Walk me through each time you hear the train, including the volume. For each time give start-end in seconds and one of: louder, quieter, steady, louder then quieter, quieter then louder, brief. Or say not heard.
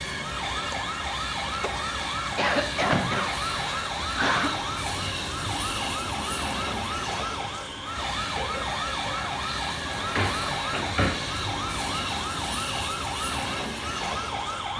0.0-14.7 steady.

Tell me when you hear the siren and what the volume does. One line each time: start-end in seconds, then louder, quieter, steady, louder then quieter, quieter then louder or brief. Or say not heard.
0.1-14.7 steady.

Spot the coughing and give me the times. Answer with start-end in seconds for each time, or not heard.
2.4-4.5, 8.0-9.3.